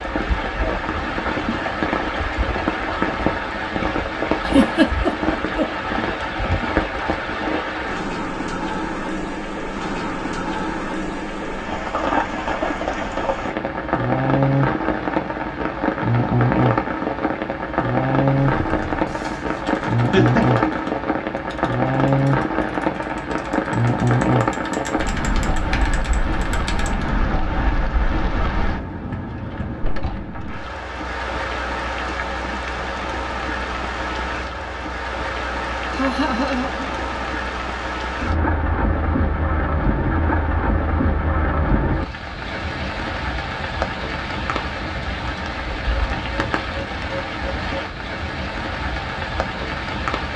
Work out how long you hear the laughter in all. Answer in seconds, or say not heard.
3 s.